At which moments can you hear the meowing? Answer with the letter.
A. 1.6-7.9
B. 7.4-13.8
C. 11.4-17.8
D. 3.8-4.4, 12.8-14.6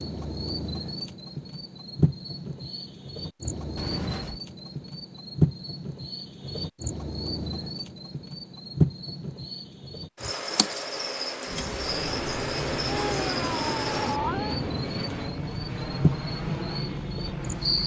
D.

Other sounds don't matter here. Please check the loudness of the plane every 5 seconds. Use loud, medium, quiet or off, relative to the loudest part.
off, off, loud, loud.